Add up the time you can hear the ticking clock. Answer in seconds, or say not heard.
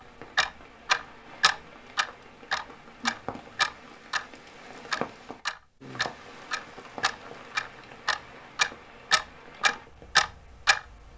11 s.